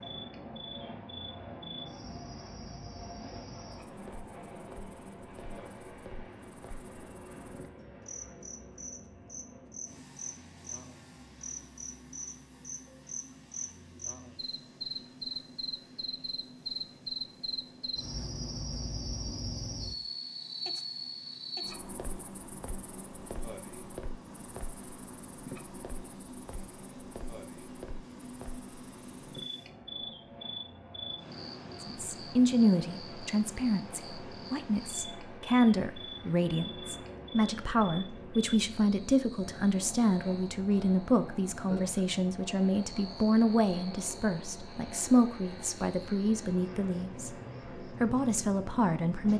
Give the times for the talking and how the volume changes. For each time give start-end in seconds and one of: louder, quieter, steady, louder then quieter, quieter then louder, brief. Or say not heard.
31.9-49.3 steady.